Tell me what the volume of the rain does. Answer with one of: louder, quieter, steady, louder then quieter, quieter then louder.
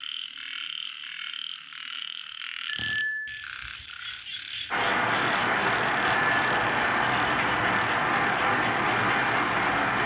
steady.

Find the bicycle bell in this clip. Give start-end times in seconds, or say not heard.
2.6-3.5, 6.0-6.7.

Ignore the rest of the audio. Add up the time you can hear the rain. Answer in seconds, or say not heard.
5 s.